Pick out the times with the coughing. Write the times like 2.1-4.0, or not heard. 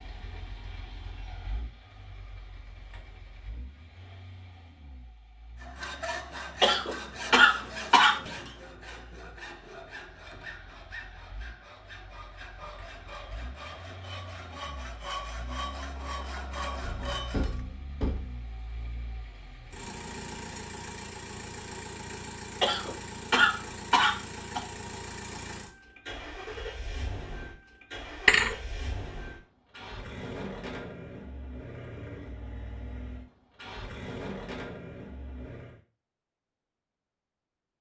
6.6-8.3, 22.6-24.6.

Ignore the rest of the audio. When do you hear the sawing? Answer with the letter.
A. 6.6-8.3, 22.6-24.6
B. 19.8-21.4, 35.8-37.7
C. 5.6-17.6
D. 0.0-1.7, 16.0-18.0
C.